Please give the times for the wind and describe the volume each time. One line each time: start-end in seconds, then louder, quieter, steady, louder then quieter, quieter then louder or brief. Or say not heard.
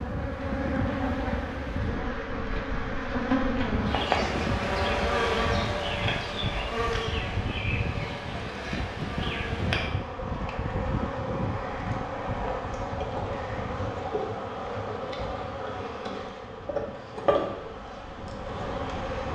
0.0-19.3 quieter.